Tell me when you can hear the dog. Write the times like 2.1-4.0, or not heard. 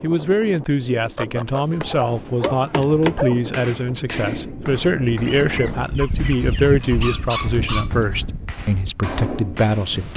1.8-3.4, 6.4-7.9.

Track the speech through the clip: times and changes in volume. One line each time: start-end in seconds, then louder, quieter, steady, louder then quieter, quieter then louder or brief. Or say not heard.
0.0-10.1 steady.